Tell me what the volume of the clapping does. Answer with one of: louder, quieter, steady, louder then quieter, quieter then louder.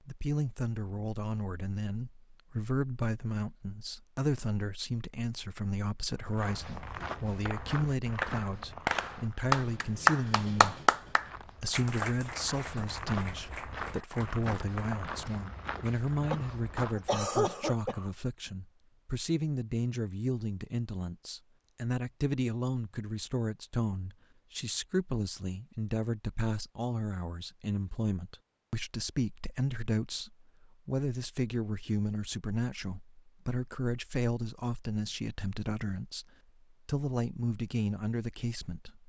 louder then quieter.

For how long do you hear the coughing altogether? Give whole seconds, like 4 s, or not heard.
2 s.